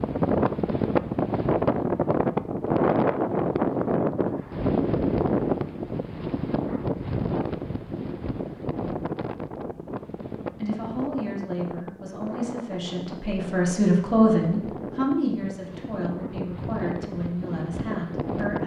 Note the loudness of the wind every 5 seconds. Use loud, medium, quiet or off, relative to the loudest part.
loud, medium, quiet, medium.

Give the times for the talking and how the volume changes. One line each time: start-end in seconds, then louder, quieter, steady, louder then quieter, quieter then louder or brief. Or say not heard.
10.6-18.6 louder then quieter.